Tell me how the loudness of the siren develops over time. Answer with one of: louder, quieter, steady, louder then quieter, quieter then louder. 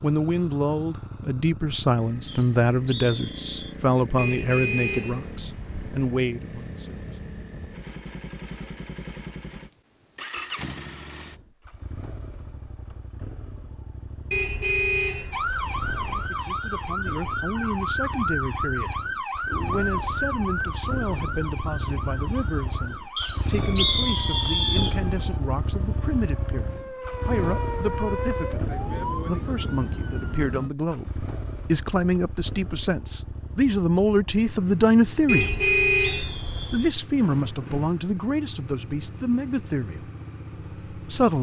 quieter then louder.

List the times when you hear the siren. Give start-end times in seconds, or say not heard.
15.3-30.7.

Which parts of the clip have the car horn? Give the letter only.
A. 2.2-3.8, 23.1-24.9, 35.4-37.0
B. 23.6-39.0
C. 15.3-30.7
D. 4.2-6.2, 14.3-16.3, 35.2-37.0
D.